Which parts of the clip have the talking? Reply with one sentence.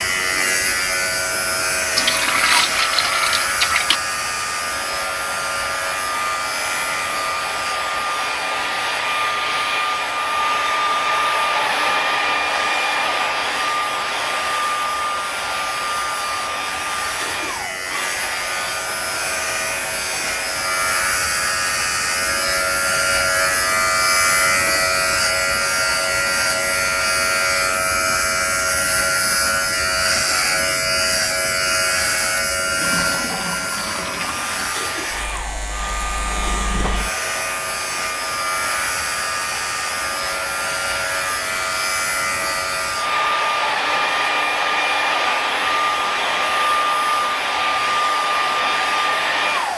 You can't hear the talking here.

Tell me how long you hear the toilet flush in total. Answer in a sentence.
The toilet flush can be heard for 4 seconds in total.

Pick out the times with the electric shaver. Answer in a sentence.
You can hear the electric shaver from 0.0 to 49.7 s.